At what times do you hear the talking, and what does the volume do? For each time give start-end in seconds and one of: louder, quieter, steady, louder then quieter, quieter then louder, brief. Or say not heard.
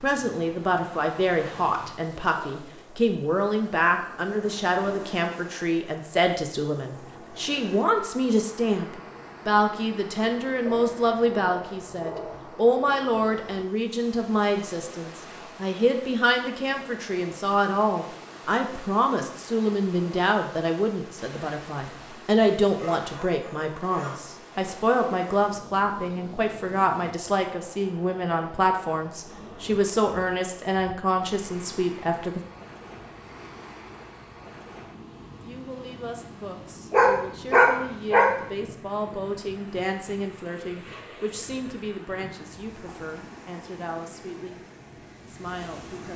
0.0-32.4 steady
35.4-44.6 louder then quieter
45.2-46.1 brief.